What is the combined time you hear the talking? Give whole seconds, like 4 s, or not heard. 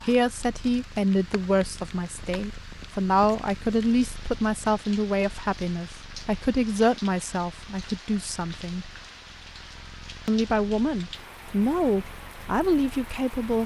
12 s.